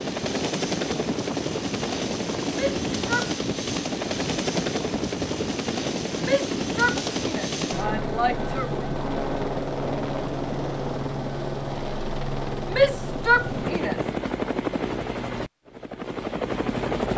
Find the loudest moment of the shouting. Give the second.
13 s.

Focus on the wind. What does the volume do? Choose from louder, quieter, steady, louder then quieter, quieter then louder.
steady.